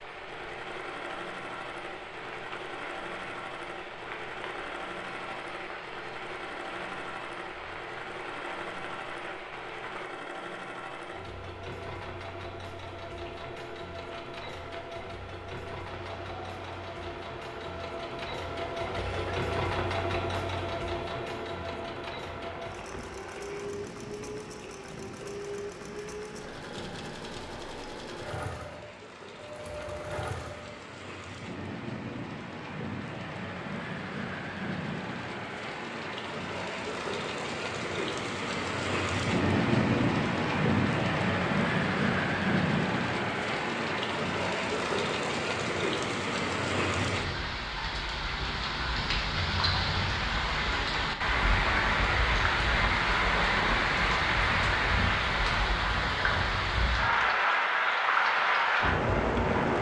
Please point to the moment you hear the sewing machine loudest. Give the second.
20 s.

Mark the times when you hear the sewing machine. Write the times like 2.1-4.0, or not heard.
0.0-30.8.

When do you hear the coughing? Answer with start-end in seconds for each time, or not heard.
18.9-19.4.